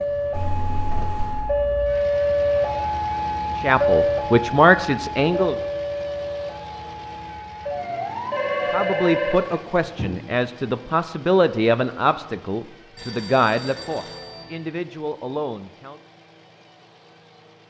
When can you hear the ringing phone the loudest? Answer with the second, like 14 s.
9 s.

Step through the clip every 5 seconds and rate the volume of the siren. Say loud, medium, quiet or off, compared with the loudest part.
loud, medium, off, off.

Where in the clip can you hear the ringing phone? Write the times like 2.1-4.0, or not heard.
0.3-1.5, 8.3-10.2, 12.9-14.4.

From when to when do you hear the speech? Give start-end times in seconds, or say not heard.
3.5-5.5, 8.7-16.0.